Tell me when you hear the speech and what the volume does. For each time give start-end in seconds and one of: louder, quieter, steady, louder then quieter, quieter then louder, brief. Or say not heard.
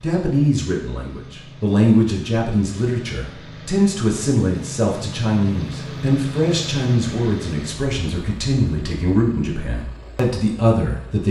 0.0-11.2 steady.